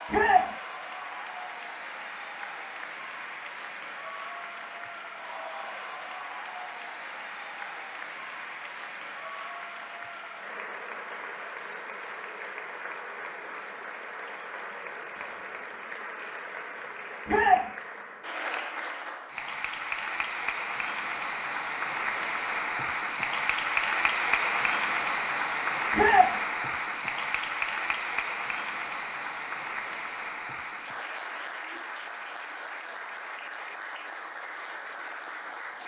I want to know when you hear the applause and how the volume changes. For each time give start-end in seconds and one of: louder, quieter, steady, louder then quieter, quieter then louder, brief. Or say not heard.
0.0-35.8 louder then quieter.